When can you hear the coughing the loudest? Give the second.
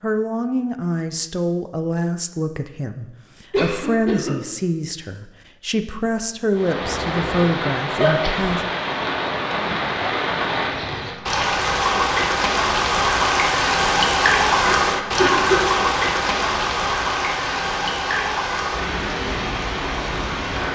15 s.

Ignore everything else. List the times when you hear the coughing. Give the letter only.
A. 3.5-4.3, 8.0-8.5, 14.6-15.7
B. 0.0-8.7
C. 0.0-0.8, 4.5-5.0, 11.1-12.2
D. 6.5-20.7
A.